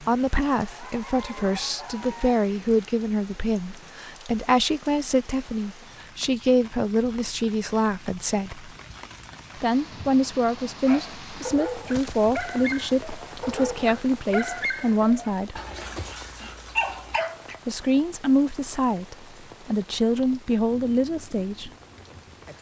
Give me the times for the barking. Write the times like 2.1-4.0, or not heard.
10.8-17.6.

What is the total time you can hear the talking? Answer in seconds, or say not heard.
19 s.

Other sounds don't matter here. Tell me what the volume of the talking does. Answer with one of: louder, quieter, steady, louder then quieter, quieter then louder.
steady.